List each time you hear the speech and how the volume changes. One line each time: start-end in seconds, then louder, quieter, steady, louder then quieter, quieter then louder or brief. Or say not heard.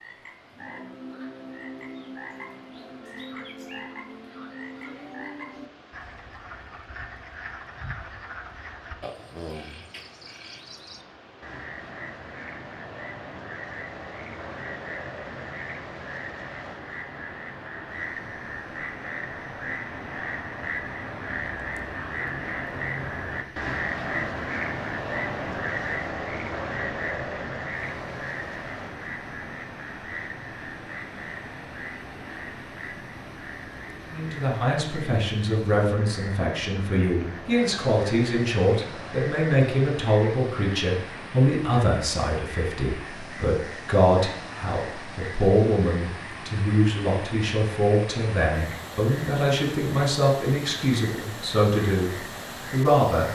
34.1-53.3 steady.